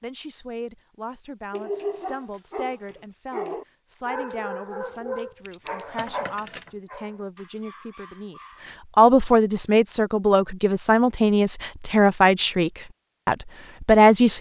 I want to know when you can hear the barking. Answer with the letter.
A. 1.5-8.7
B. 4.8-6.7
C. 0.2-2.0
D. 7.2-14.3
A.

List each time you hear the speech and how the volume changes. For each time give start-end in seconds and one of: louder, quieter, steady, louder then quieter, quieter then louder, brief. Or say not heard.
0.0-14.3 louder.